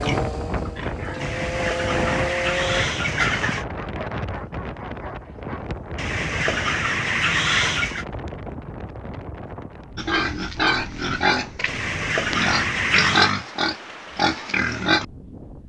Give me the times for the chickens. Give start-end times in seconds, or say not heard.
1.2-3.6, 6.0-8.1, 11.7-13.3.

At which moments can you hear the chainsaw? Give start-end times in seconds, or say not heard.
0.0-2.9.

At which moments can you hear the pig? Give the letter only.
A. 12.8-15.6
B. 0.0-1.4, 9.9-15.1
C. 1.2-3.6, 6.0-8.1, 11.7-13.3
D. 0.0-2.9
B.